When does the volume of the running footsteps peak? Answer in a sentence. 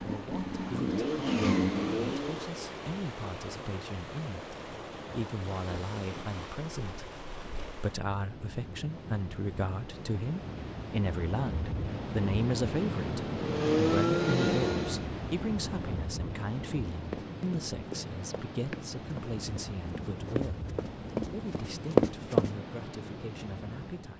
The volume of the running footsteps peaks at 22 seconds.